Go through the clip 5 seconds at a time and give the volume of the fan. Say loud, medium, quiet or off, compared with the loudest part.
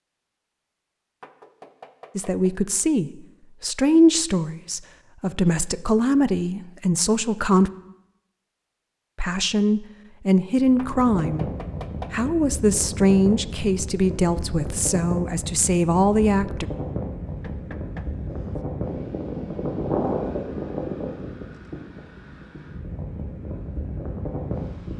off, off, loud, loud, loud.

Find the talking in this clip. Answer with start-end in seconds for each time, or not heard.
2.1-7.7, 9.2-11.5, 12.1-16.6.